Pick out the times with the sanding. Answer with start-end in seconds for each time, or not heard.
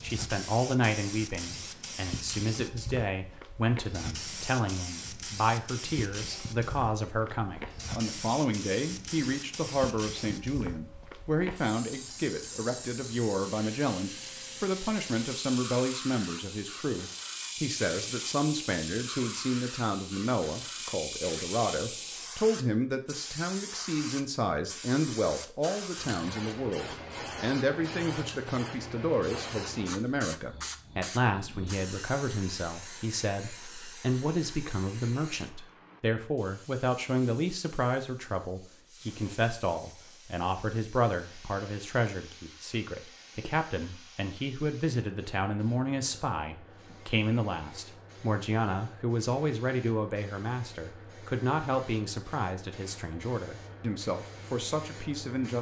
not heard.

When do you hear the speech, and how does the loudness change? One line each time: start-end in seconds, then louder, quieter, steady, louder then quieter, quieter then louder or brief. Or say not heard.
0.0-55.5 steady.